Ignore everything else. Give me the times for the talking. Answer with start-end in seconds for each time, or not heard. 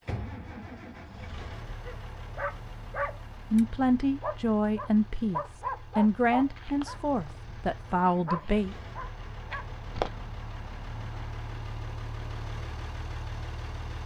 3.5-8.8.